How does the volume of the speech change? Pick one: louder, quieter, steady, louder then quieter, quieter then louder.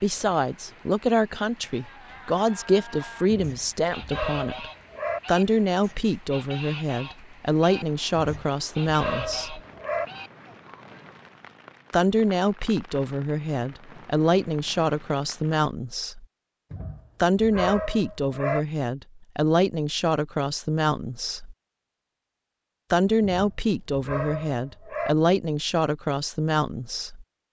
steady.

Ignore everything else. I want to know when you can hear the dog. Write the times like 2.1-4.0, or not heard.
3.3-5.2, 8.2-10.1, 16.7-18.6, 23.2-25.1.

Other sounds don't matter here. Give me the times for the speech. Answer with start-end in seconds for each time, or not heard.
0.0-9.6, 11.9-16.2, 17.2-21.6, 22.9-27.2.